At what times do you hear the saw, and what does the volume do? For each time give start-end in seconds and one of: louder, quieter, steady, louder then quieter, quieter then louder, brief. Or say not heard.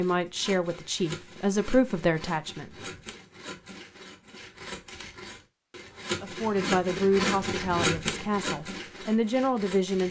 0.0-10.0 louder.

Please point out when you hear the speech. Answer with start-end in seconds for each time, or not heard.
0.0-2.7, 6.2-10.0.